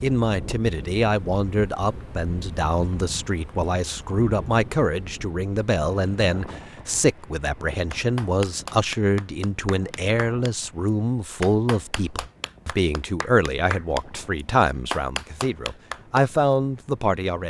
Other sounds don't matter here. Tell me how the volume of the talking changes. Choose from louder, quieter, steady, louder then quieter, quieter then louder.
steady.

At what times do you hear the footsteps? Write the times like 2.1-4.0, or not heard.
not heard.